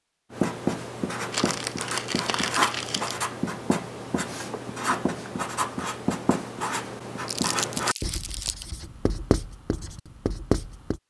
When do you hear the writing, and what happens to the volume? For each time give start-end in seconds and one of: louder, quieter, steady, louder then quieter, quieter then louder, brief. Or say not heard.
0.3-11.0 steady.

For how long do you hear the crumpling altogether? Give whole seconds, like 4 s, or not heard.
3 s.